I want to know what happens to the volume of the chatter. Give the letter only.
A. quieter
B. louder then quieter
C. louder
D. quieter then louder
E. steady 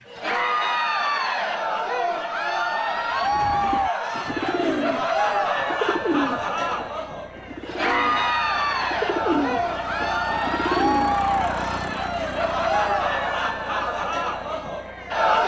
E.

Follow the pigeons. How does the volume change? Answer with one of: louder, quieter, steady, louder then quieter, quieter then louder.
quieter then louder.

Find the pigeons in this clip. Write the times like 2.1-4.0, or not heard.
3.1-11.2.